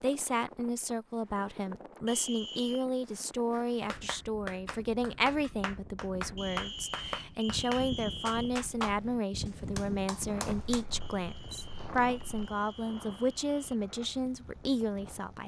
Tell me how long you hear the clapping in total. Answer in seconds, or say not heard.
7 s.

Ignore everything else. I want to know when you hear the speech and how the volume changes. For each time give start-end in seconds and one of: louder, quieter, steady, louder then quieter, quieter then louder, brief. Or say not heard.
0.0-15.4 steady.